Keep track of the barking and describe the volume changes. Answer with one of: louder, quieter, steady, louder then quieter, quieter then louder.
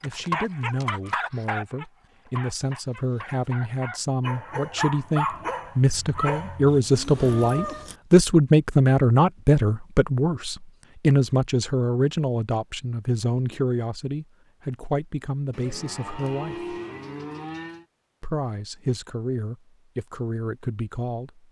quieter then louder.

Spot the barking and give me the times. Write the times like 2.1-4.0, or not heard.
0.0-6.8.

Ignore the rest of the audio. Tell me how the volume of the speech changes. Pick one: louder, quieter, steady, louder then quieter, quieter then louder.
louder then quieter.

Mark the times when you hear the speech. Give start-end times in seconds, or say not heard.
0.0-16.8, 18.2-21.4.